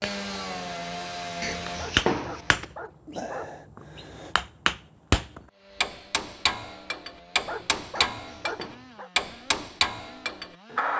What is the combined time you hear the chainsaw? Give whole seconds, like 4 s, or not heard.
8 s.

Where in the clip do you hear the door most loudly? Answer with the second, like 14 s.
2 s.